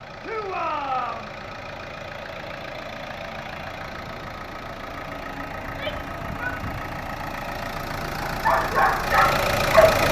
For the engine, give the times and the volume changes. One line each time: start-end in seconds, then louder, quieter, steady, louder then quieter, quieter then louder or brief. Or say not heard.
0.0-10.0 louder.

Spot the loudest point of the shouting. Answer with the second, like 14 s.
1 s.